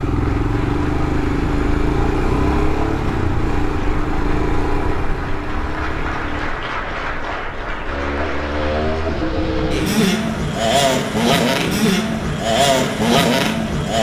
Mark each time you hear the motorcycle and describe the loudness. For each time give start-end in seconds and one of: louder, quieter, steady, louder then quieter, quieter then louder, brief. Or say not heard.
0.0-13.9 quieter then louder.